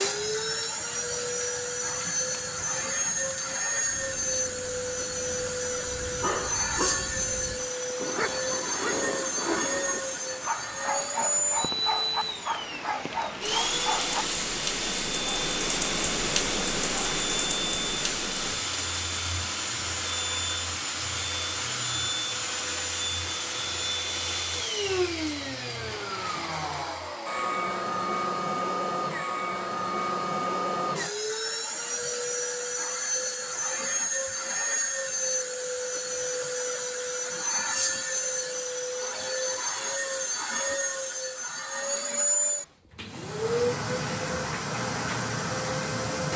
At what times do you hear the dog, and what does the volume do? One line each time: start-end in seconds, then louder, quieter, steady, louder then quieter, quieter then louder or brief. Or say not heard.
5.8-14.2 steady.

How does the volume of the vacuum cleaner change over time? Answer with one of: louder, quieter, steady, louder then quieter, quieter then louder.
steady.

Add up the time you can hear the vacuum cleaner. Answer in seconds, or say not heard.
46 s.